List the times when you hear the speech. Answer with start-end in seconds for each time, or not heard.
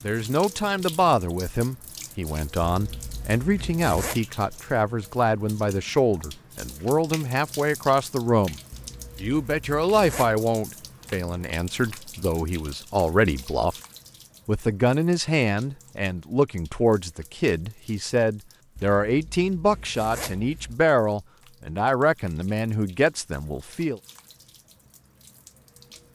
0.0-8.6, 9.2-13.8, 14.4-24.0.